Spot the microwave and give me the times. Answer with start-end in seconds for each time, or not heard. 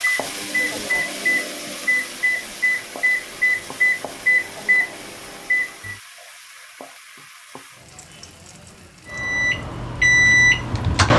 0.0-6.0, 9.1-11.1.